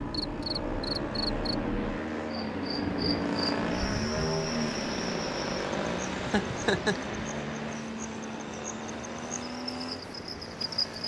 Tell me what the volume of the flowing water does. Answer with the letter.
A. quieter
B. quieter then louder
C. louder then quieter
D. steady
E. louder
C.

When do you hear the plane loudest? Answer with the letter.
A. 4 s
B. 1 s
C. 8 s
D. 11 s
A.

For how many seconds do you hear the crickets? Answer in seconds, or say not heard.
11 s.